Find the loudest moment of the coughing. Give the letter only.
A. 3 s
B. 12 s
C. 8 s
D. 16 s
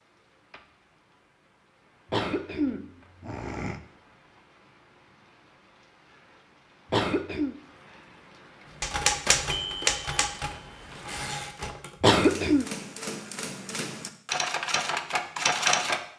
B.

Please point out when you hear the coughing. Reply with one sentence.
You can hear the coughing from 2.1 to 3.8 s, from 6.9 to 7.5 s and from 12.0 to 12.7 s.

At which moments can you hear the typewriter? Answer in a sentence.
The typewriter can be heard from 8.8 to 16.0 s.